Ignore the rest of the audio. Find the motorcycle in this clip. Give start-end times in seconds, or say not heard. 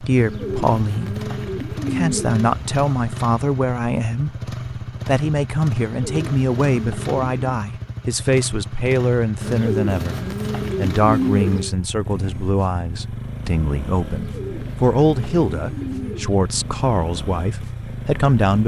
0.0-18.6.